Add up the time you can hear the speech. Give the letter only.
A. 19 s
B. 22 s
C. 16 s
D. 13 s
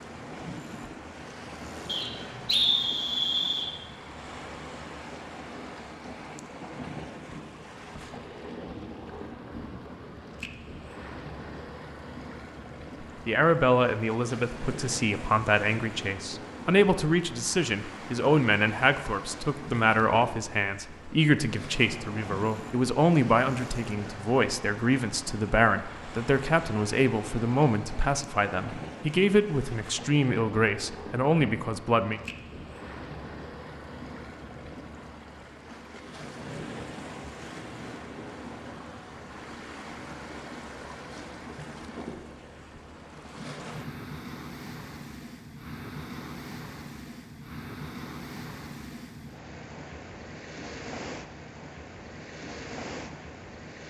A.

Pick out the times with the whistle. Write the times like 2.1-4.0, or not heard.
1.9-3.7.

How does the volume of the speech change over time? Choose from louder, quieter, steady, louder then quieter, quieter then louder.
steady.